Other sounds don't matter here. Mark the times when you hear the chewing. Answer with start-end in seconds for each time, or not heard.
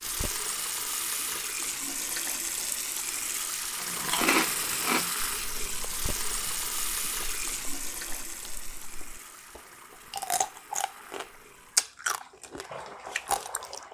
3.8-13.8.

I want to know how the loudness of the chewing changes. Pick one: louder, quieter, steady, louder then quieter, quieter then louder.
quieter then louder.